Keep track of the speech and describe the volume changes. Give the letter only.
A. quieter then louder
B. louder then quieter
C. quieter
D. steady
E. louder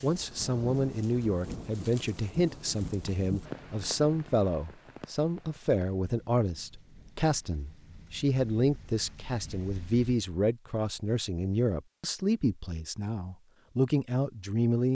D.